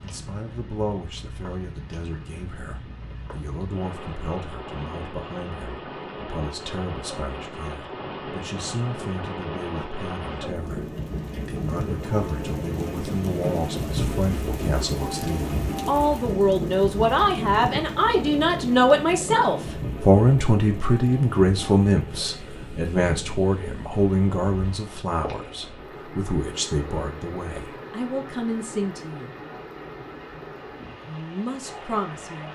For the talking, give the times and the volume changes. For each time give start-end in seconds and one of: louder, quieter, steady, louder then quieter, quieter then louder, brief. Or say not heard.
0.0-29.4 louder then quieter
31.1-32.5 brief.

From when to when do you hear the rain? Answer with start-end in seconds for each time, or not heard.
0.0-32.5.